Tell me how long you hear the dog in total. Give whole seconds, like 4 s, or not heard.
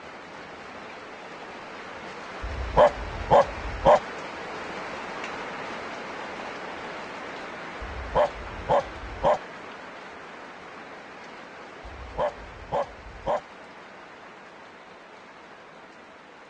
5 s.